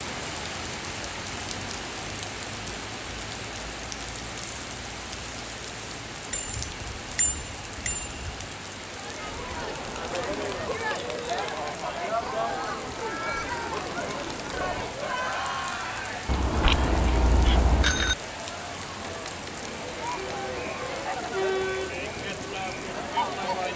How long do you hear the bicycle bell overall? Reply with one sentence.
You can hear the bicycle bell for 4 seconds altogether.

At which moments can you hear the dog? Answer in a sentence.
You can't hear the dog here.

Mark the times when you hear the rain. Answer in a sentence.
You can hear the rain from 0.0 to 23.7 s.